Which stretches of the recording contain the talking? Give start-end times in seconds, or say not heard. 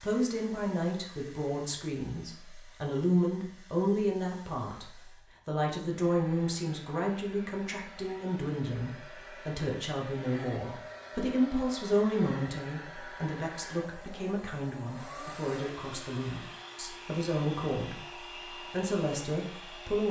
0.0-18.1, 18.7-20.0.